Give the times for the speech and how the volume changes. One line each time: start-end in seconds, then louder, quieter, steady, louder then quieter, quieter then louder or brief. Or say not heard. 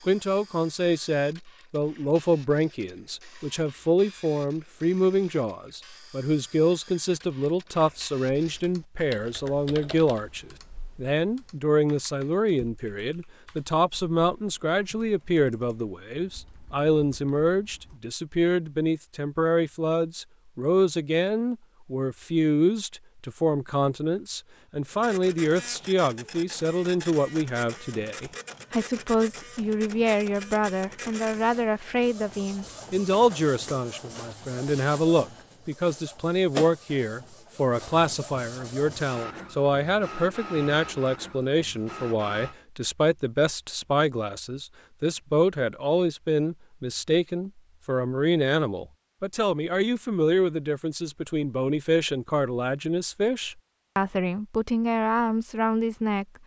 0.1-56.2 steady.